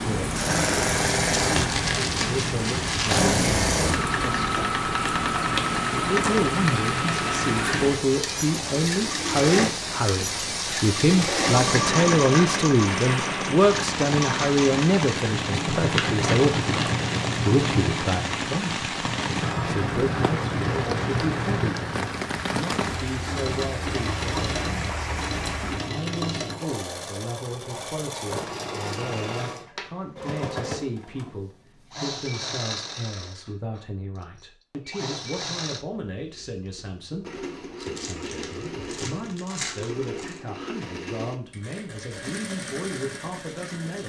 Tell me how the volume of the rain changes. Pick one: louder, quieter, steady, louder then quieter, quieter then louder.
steady.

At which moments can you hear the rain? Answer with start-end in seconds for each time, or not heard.
0.0-25.9.